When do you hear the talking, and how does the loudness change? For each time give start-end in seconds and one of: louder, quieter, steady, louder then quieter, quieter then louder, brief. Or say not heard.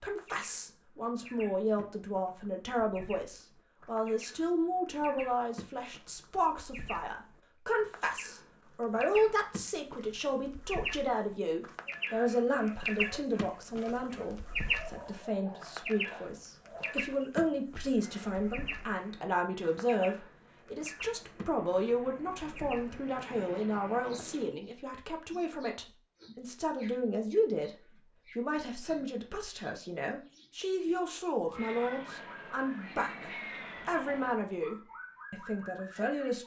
0.0-36.4 steady.